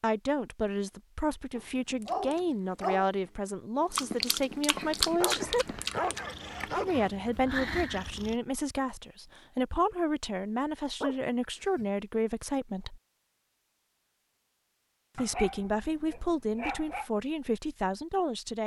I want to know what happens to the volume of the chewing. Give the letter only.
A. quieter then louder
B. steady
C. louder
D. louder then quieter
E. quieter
D.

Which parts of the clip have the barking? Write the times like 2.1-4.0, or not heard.
1.6-3.1, 5.2-7.1, 11.0-11.8, 15.2-17.1.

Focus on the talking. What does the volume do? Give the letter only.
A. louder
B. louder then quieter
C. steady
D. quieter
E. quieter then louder
C.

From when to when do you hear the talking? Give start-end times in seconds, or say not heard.
0.0-5.8, 6.7-13.0, 15.2-18.6.